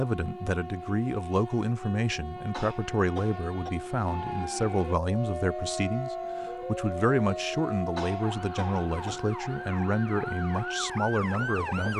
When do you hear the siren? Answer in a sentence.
The siren can be heard from 4.0 to 11.9 s.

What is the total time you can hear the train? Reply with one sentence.
You can hear the train for 12 seconds altogether.